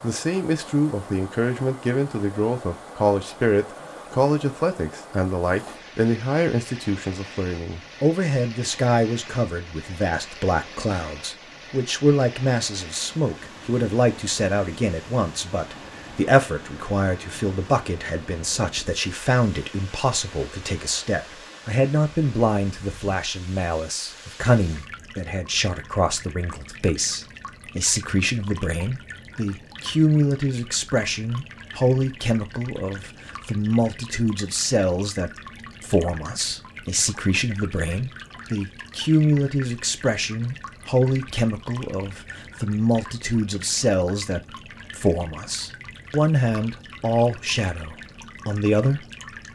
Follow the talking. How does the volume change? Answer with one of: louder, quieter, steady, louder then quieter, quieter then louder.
steady.